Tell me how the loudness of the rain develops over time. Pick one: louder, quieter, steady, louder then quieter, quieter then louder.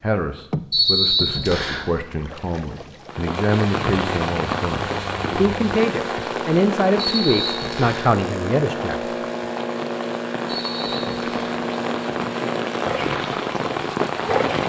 quieter then louder.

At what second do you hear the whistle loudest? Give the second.
1 s.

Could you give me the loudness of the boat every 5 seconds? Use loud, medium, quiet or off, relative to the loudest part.
medium, loud, loud.